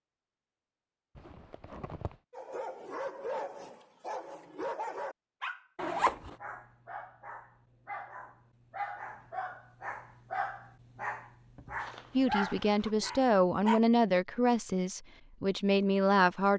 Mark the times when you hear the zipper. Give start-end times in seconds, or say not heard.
1.1-2.2, 5.8-6.3, 11.8-12.9.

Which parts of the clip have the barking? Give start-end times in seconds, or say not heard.
2.3-13.8.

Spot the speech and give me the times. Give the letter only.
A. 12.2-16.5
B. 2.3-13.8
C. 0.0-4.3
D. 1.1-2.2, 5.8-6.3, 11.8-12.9
A.